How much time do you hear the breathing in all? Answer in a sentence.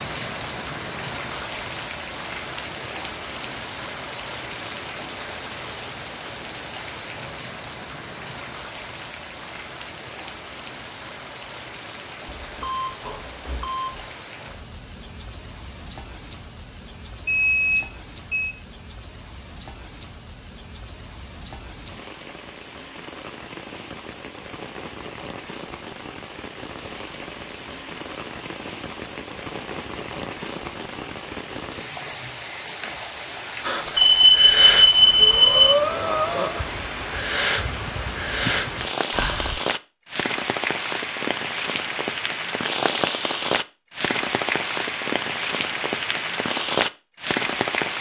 The breathing can be heard for 6 seconds in total.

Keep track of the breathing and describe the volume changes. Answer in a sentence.
The loudness of the breathing stays about the same.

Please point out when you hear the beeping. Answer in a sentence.
The beeping can be heard from 12.3 to 14.1 s, from 17.2 to 18.6 s and from 34.0 to 35.5 s.